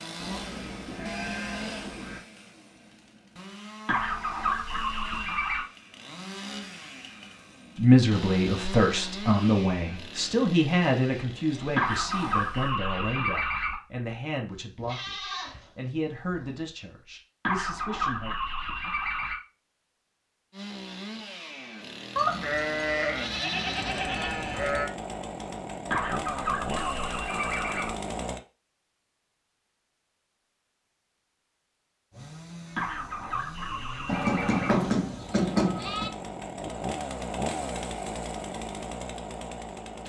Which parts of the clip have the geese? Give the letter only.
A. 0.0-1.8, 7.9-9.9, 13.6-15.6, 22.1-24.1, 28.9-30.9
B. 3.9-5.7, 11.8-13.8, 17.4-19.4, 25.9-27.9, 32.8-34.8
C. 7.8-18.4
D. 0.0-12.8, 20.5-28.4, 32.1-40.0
B.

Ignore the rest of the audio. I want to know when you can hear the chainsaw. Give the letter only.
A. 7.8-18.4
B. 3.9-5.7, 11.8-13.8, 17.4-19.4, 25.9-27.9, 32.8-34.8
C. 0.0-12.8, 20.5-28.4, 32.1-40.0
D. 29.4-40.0
C.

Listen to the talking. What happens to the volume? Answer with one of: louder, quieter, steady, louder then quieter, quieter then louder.
quieter.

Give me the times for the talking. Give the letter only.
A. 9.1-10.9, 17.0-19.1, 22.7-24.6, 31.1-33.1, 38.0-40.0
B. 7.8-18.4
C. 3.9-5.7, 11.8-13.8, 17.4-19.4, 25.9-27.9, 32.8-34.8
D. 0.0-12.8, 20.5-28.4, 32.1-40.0
B.